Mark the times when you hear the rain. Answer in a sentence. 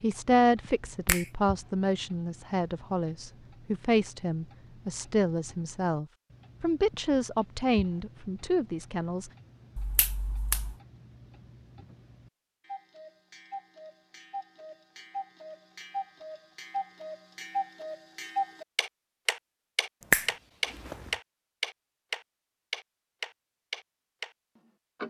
The rain can't be heard in this clip.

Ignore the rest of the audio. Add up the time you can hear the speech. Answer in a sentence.
The speech can be heard for 9 seconds in total.